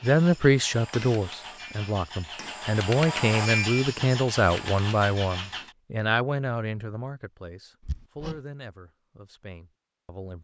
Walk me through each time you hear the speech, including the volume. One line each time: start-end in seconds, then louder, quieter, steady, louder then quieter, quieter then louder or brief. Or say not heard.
0.0-10.4 quieter.